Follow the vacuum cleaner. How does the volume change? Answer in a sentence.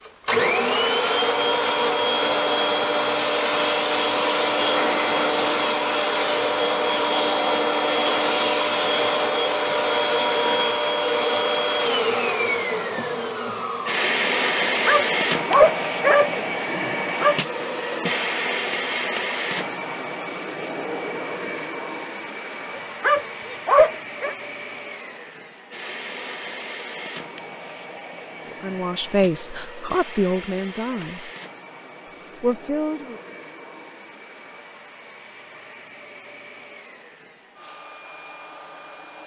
The loudness of the vacuum cleaner goes down.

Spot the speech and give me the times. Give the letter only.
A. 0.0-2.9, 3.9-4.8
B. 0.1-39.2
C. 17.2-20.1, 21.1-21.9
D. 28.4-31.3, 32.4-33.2
D.